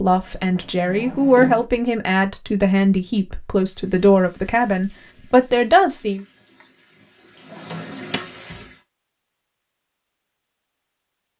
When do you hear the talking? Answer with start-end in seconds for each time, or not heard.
0.0-6.2.